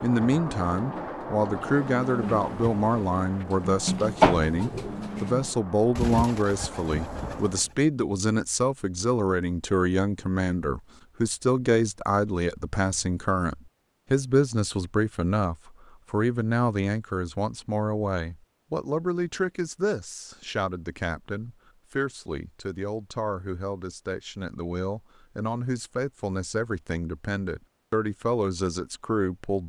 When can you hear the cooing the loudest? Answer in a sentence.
The loudest moment of the cooing is at 4 seconds.